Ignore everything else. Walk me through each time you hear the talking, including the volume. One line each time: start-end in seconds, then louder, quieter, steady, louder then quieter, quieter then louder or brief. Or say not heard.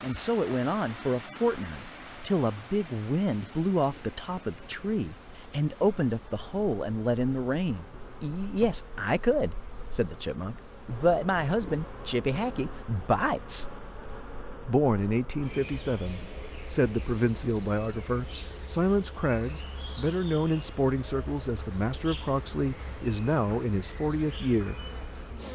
0.0-13.7 steady
14.7-24.8 steady.